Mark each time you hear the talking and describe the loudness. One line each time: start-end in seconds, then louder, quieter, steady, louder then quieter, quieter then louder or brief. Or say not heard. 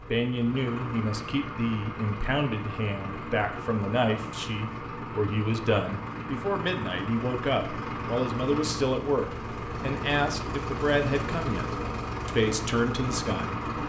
0.1-13.6 steady.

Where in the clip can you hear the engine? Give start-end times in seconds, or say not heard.
0.0-13.8.